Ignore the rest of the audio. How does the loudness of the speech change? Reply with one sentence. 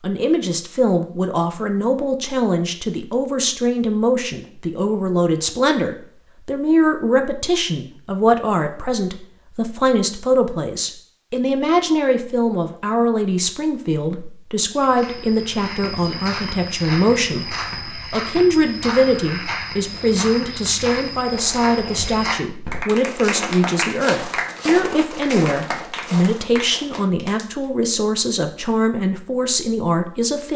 The volume of the speech stays about the same.